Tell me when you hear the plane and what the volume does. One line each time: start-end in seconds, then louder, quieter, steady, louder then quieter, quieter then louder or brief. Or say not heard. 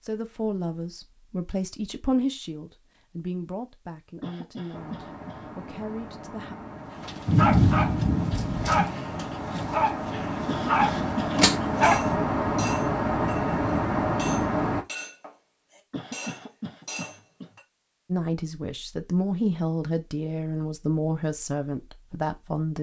4.7-14.8 louder.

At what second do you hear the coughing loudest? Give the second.
11 s.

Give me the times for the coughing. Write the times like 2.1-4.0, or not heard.
4.2-5.5, 10.4-11.3, 15.9-17.5.